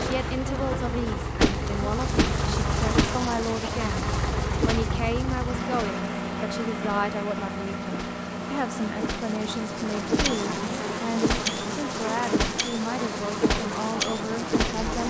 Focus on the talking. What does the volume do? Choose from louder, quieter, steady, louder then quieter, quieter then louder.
steady.